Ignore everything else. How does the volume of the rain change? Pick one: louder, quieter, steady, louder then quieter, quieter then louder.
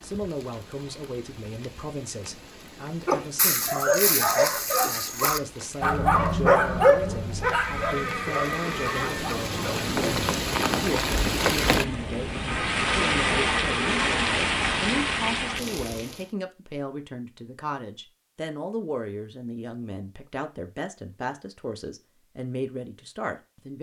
louder.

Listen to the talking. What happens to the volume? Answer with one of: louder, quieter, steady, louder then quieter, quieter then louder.
steady.